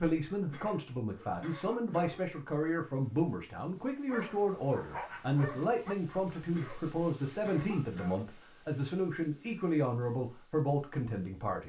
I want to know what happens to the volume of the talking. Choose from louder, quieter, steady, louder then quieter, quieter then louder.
steady.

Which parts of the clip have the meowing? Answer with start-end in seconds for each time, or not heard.
not heard.